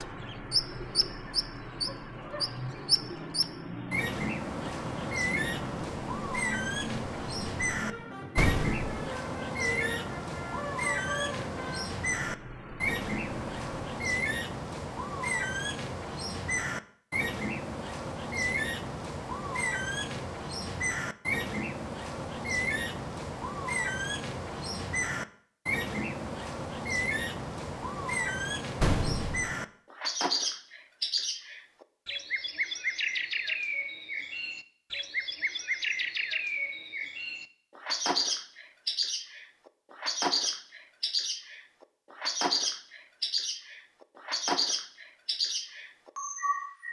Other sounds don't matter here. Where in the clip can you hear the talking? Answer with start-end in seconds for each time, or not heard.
not heard.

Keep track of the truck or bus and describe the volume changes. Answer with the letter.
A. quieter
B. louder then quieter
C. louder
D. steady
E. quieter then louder
D.